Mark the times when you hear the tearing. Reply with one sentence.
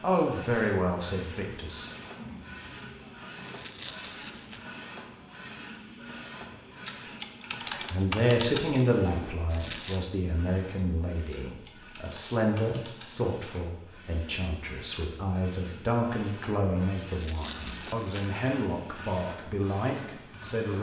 The tearing can be heard from 3.4 to 4.7 s, from 9.4 to 10.0 s and from 17.1 to 18.4 s.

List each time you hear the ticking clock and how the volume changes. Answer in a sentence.
The ticking clock can't be heard in this clip.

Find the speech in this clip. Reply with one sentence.
You can hear the speech from 0.0 to 1.9 s and from 7.9 to 20.7 s.